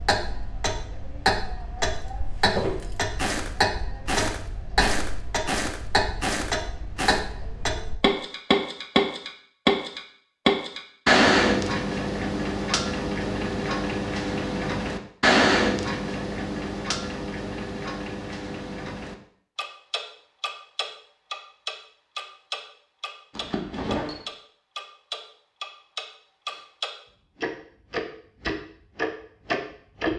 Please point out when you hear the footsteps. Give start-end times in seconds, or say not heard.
2.4-7.2.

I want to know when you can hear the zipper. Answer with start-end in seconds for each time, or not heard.
23.3-24.3.